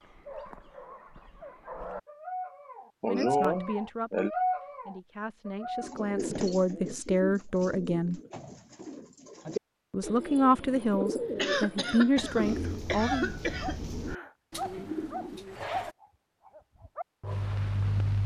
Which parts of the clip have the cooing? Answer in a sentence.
The cooing can be heard from 5.8 to 15.9 s.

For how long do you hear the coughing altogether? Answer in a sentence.
You can hear the coughing for 4 seconds altogether.